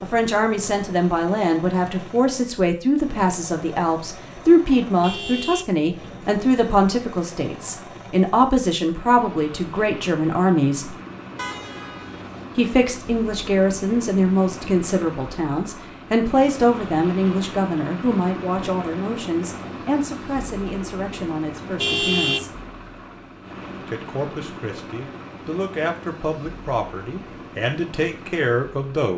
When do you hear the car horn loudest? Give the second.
22 s.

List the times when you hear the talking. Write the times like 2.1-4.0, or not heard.
0.0-10.9, 12.6-22.6, 23.9-29.1.